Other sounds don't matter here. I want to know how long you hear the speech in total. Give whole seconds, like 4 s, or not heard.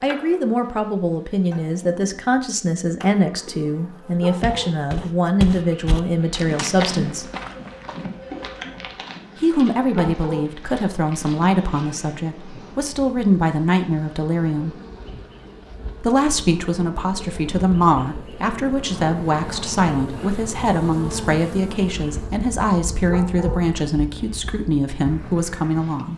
23 s.